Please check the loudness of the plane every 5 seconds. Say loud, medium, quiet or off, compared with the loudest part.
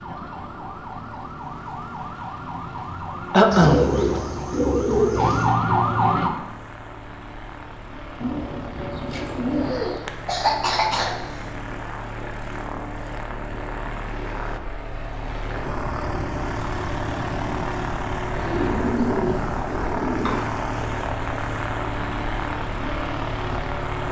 quiet, medium, medium, loud, loud.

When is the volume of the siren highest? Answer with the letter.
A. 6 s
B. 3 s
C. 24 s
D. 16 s
A.